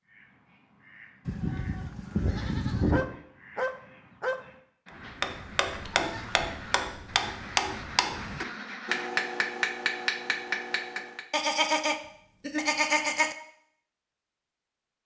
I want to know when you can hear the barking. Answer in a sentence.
The barking can be heard from 2.4 to 4.4 s.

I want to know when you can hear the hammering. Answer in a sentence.
You can hear the hammering from 5.0 to 11.2 s.